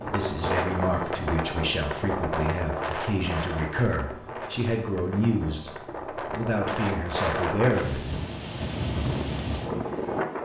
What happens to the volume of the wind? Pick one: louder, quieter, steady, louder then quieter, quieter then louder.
quieter then louder.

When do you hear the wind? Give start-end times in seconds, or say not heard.
0.0-10.4.